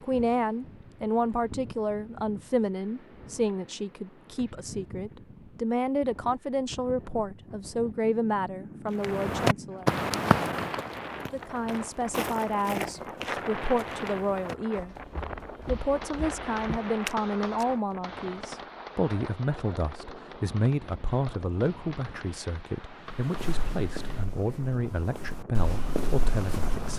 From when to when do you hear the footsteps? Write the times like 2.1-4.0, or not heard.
9.0-17.6, 23.1-26.9.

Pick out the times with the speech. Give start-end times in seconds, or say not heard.
0.0-9.9, 11.2-14.9, 15.7-26.9.